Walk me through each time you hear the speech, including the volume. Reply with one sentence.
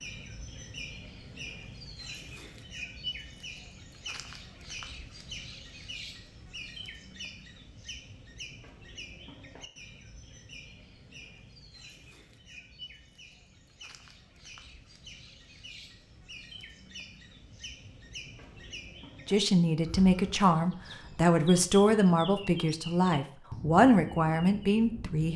You can hear the speech from 19.2 to 25.3 s, at a steady volume.